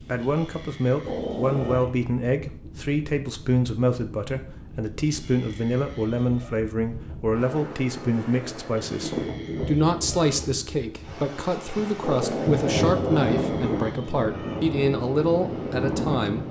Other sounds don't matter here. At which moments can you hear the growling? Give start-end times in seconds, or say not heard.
1.1-1.8, 8.2-9.1, 12.0-13.8.